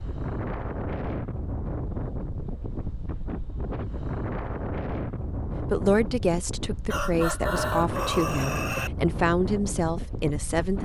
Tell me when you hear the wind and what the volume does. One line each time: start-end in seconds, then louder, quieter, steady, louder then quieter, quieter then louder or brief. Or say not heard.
0.0-10.7 steady.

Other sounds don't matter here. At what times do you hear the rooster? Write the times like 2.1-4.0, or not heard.
6.9-8.9.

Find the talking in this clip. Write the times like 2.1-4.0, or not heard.
5.6-10.7.